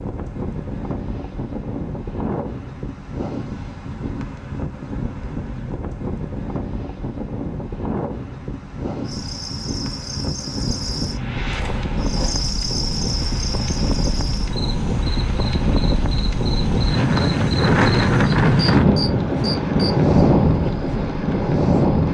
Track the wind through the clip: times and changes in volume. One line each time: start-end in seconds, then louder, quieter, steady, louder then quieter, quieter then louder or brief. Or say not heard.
0.0-22.1 louder.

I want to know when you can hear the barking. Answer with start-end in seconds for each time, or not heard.
not heard.